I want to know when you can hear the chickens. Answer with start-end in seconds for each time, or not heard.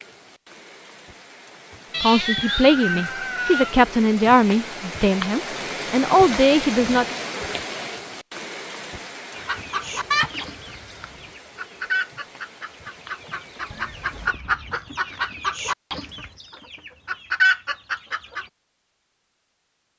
9.3-18.4.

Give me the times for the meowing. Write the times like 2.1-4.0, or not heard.
1.9-3.8, 9.7-11.3, 13.7-14.9.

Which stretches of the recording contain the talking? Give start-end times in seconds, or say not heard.
2.0-7.2.